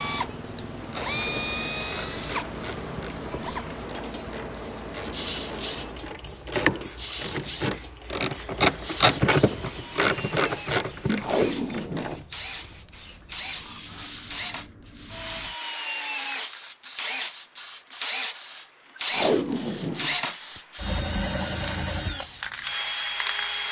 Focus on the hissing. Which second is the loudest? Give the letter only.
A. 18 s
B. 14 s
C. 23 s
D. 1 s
C.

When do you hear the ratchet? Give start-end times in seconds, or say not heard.
0.8-12.2.